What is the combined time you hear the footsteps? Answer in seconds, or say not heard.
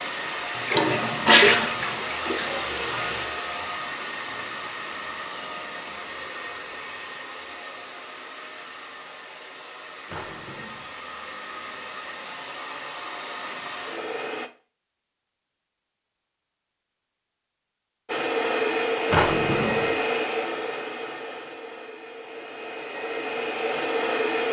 not heard.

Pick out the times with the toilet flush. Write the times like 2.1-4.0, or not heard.
0.7-3.3.